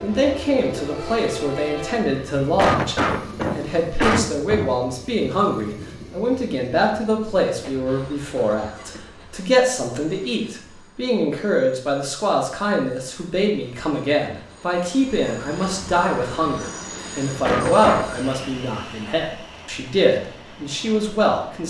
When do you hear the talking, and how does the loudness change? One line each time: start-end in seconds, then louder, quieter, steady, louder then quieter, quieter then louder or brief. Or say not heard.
0.0-21.6 steady.